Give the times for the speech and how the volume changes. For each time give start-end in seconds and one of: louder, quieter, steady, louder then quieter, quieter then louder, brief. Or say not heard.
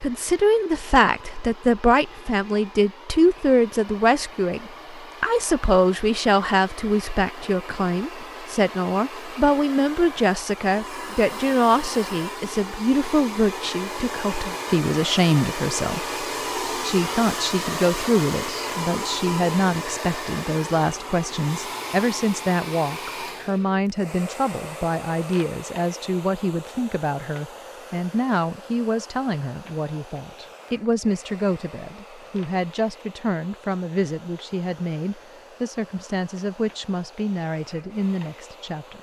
0.0-38.9 quieter.